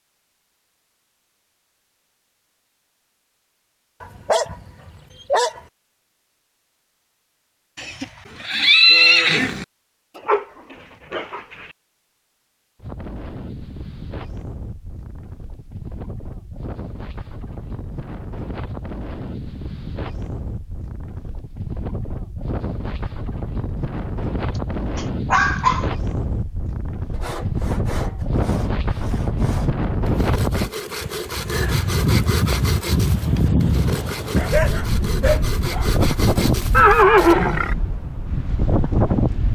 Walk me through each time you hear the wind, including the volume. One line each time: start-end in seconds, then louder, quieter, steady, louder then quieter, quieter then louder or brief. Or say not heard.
12.8-39.5 louder.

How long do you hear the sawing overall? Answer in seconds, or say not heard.
10 s.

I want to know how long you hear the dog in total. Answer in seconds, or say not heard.
6 s.